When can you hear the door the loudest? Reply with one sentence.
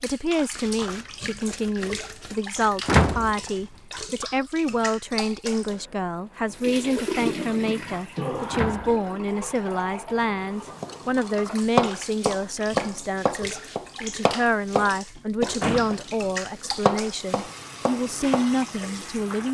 The loudest moment of the door is at 3 seconds.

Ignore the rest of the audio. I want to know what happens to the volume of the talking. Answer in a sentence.
The volume of the talking stays about the same.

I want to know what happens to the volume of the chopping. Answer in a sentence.
The loudness of the chopping goes down, then up.